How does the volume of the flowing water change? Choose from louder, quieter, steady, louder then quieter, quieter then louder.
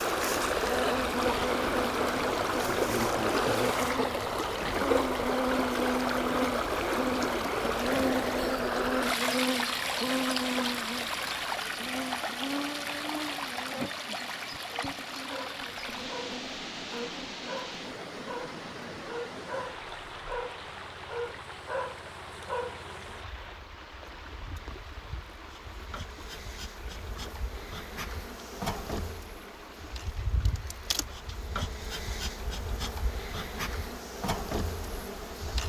quieter.